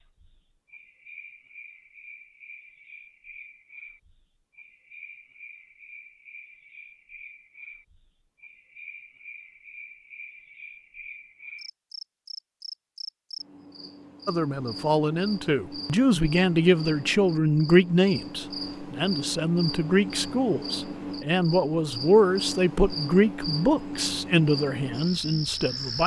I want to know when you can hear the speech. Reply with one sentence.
The speech can be heard from 14.2 to 26.0 s.